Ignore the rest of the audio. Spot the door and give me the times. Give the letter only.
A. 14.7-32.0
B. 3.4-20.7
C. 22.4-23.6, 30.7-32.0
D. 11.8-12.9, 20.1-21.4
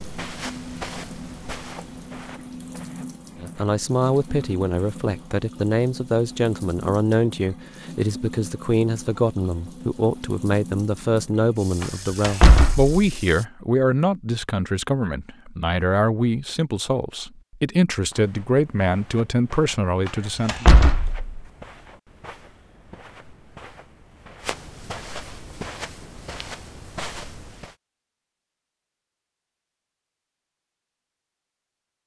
D.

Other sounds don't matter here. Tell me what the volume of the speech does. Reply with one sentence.
The loudness of the speech stays about the same.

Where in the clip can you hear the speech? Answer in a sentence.
The speech can be heard from 3.4 to 20.7 s.